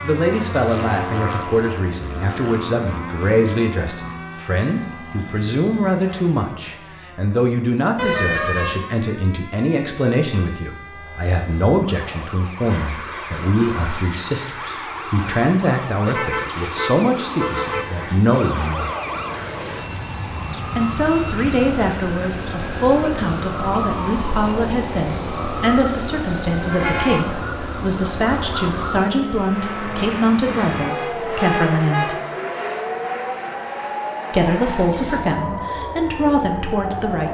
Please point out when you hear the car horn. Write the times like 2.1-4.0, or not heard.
8.0-8.8, 16.1-17.9, 30.5-32.1.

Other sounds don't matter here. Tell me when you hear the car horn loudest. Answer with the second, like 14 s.
8 s.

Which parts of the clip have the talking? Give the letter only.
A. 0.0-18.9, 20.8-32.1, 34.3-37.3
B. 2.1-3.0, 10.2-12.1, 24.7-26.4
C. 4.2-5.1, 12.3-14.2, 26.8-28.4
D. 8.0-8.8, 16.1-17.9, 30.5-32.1
A.